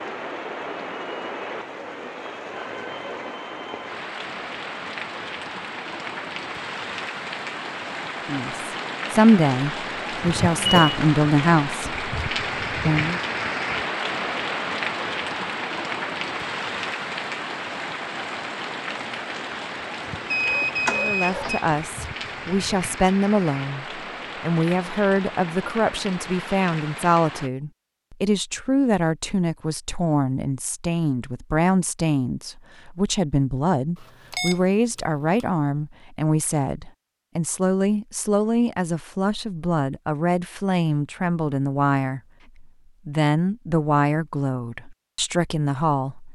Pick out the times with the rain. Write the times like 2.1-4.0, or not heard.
0.0-27.5.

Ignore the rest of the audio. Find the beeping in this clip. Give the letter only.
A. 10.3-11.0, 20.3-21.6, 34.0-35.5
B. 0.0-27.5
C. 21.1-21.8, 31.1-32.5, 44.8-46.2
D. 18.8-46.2
A.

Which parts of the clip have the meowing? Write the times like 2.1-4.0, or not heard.
not heard.